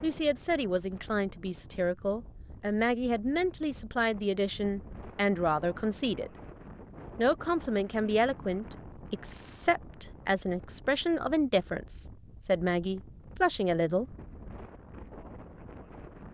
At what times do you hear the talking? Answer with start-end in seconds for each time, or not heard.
0.0-6.3, 7.2-14.1.